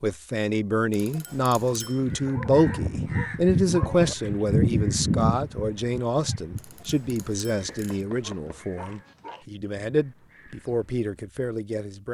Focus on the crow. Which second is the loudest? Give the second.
5 s.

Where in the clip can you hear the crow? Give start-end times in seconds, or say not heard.
1.9-10.8.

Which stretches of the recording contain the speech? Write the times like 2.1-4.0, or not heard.
0.0-12.0.